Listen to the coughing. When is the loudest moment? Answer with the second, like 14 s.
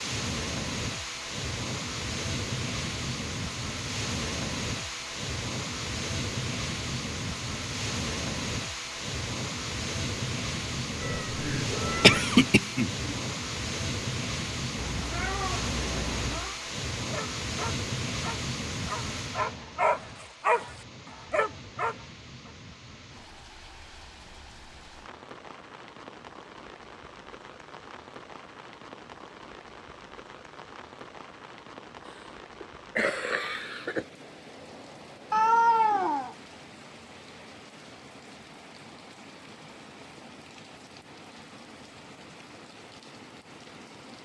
12 s.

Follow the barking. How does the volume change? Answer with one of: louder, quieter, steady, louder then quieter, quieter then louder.
louder.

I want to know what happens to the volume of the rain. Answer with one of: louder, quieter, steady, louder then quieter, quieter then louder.
quieter.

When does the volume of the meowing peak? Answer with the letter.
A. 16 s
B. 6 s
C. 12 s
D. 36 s
D.